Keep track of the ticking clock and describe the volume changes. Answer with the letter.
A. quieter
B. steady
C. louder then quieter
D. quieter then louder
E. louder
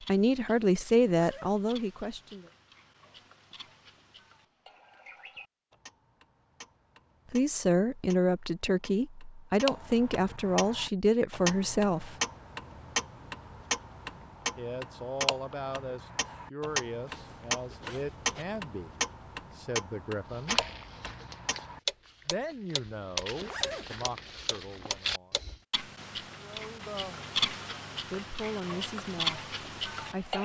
E.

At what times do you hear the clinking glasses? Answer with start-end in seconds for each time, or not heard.
not heard.